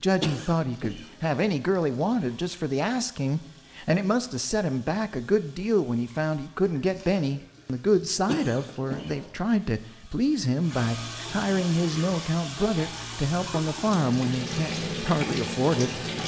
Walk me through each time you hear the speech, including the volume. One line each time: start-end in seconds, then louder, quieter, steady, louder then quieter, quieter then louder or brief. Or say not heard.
0.0-16.1 steady.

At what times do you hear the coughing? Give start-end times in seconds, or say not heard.
0.2-1.1, 8.2-9.2.